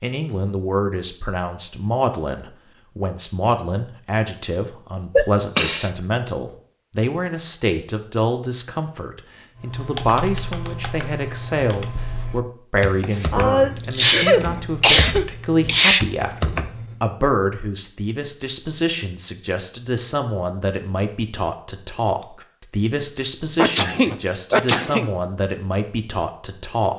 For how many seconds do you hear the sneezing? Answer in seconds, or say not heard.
5 s.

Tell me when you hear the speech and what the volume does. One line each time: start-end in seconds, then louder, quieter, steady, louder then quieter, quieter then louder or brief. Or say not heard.
0.0-26.9 steady.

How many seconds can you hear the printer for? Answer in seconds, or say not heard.
not heard.